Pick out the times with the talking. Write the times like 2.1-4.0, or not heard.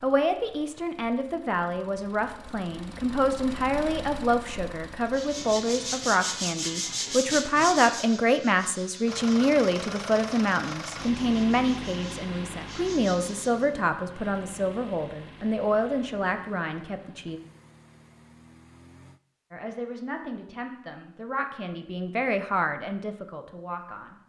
0.0-17.4, 19.5-24.1.